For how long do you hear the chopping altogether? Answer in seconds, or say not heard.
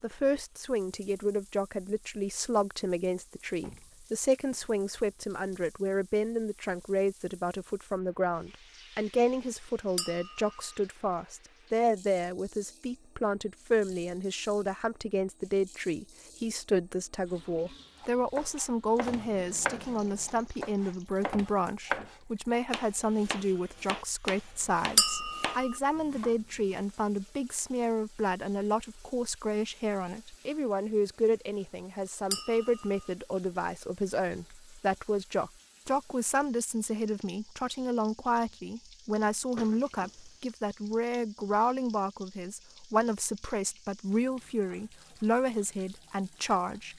9 s.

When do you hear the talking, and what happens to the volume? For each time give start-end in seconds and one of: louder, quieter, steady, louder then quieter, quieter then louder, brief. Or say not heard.
0.0-46.9 steady.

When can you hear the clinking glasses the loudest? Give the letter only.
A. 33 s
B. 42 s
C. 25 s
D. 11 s
C.